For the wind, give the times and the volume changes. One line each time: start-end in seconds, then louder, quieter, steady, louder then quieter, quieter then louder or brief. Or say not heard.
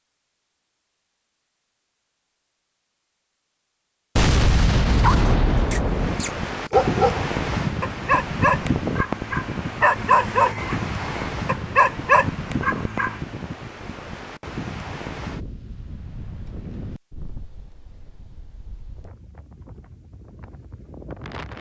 5.8-21.5 quieter.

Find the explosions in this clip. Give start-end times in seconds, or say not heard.
4.2-6.2.